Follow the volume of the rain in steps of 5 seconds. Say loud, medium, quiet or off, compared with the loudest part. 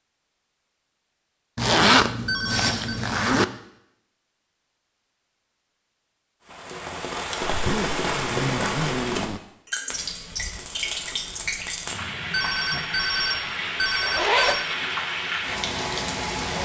off, loud, loud, loud.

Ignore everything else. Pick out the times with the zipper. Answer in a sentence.
You can hear the zipper from 1.6 to 3.5 s, from 7.5 to 9.4 s and from 14.0 to 14.6 s.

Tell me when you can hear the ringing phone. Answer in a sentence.
The ringing phone can be heard from 2.2 to 3.0 s and from 12.3 to 14.7 s.